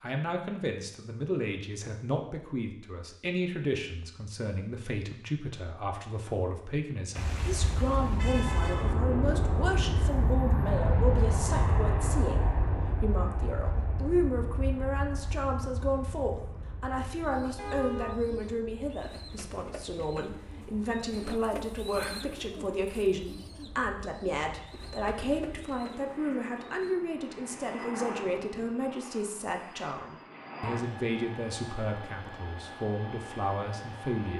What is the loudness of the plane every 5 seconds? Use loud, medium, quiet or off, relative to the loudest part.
off, loud, loud, quiet, quiet, medium, medium.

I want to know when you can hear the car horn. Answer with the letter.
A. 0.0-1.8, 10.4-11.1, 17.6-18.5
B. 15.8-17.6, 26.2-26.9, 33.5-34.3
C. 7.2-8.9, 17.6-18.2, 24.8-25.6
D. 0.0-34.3
C.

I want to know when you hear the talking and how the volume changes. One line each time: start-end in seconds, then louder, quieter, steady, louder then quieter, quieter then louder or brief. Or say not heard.
0.0-34.3 steady.